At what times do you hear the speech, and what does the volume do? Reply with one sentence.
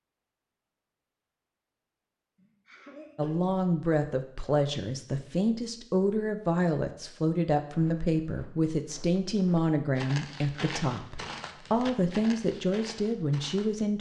You can hear the speech from 3.1 to 13.9 s, at a steady volume.